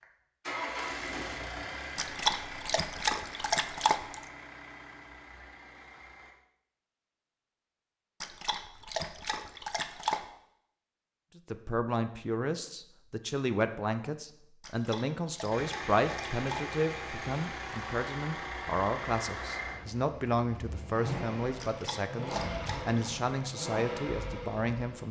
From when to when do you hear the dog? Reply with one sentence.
You can hear the dog from 1.9 to 4.2 s, from 8.2 to 10.2 s, from 14.6 to 16.8 s and from 21.6 to 23.1 s.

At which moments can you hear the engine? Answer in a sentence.
You can hear the engine from 0.0 to 6.3 s and from 15.5 to 25.0 s.